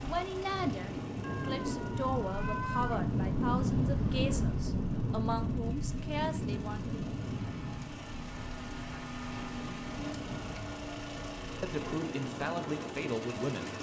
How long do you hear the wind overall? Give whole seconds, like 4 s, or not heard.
14 s.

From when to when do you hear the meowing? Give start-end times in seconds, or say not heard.
1.2-3.1.